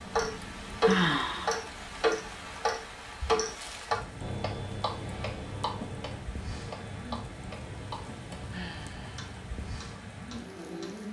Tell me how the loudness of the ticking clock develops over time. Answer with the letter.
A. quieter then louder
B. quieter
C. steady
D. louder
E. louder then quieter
B.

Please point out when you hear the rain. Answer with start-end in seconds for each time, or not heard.
0.0-11.0.